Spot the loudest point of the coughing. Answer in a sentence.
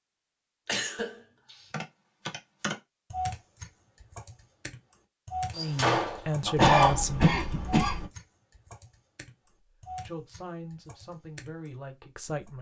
The volume of the coughing peaks at 7 seconds.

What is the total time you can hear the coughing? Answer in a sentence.
You can hear the coughing for 2 seconds altogether.